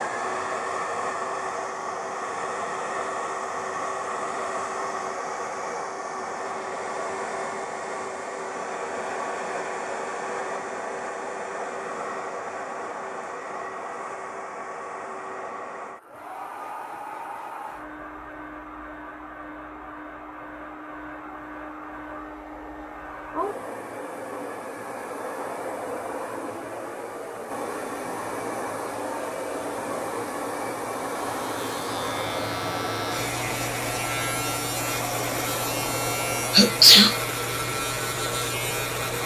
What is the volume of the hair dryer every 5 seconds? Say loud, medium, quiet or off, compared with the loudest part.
loud, loud, loud, medium, medium, loud, loud, loud.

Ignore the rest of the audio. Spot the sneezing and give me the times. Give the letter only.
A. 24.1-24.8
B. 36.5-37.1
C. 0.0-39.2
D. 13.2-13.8
B.